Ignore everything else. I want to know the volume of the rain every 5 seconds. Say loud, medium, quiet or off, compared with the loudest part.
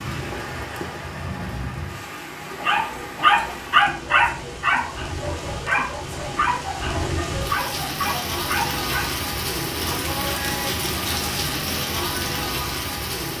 medium, loud, loud.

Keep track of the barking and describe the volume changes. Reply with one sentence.
The volume of the barking goes down.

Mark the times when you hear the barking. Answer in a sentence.
The barking can be heard from 2.5 to 9.1 s.